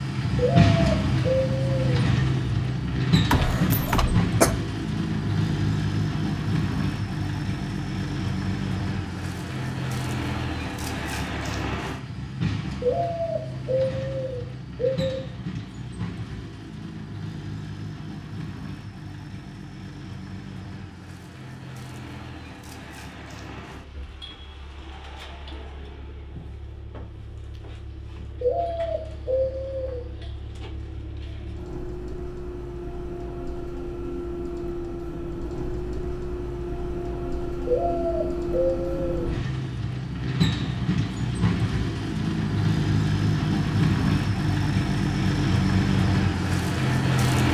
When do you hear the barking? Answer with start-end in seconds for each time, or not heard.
not heard.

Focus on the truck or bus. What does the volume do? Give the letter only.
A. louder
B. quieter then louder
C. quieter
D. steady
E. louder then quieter
B.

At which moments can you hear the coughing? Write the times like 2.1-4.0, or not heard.
3.3-4.5.